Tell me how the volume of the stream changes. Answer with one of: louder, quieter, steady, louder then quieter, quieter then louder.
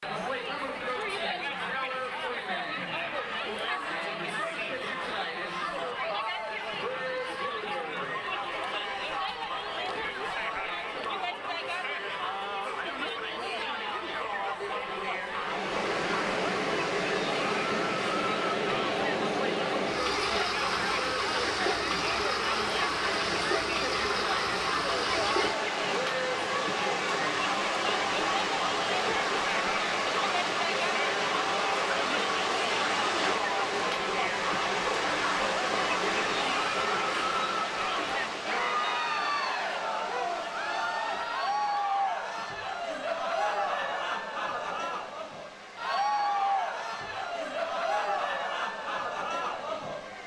quieter.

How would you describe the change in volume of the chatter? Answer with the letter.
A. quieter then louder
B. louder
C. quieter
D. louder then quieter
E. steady
E.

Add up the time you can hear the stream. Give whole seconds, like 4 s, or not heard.
35 s.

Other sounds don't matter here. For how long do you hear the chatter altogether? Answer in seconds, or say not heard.
50 s.